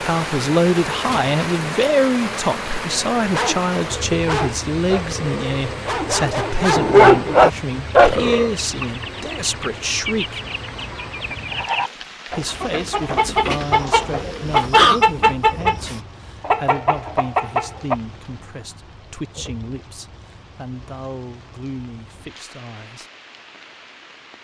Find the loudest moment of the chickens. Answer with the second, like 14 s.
15 s.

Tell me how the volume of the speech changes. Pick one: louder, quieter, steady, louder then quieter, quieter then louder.
quieter.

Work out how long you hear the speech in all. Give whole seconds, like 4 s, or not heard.
21 s.